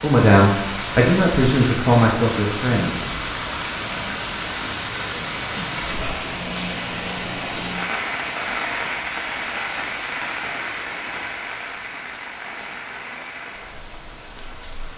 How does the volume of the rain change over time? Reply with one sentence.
The volume of the rain goes down.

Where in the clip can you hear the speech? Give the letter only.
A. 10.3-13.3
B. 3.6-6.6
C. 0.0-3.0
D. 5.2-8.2
C.